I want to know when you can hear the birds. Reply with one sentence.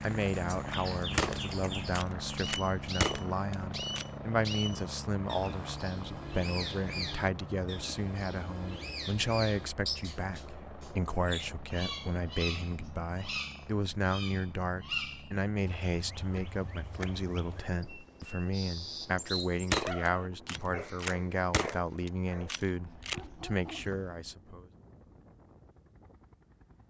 You can hear the birds from 0.0 to 19.9 s.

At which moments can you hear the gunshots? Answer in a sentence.
You can hear the gunshots from 1.1 to 4.0 s and from 19.7 to 23.3 s.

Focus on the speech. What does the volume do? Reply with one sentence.
The volume of the speech stays about the same.